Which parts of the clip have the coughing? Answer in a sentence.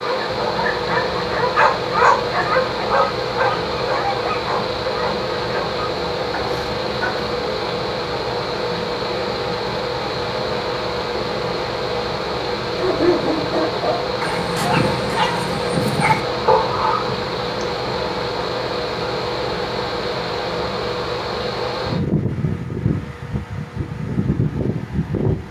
The coughing can't be heard in this clip.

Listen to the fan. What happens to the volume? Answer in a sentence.
The volume of the fan stays about the same.